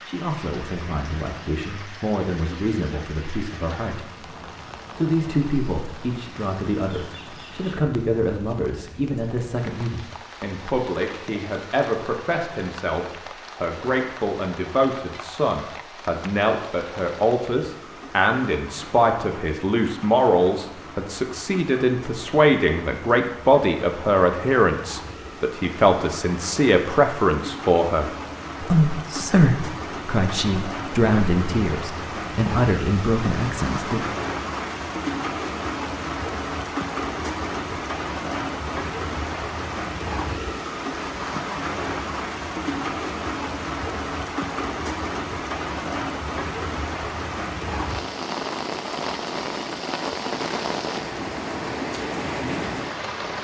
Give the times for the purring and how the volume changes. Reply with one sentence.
You can't hear the purring here.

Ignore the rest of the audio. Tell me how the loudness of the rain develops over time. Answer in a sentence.
The volume of the rain goes up.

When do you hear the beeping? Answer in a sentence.
The beeping can't be heard in this clip.